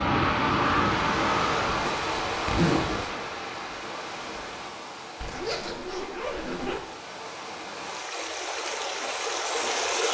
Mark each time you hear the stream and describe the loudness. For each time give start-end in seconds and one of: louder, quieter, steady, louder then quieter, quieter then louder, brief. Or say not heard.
0.0-10.0 quieter then louder.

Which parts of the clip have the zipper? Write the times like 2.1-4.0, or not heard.
1.7-3.1, 5.2-6.8.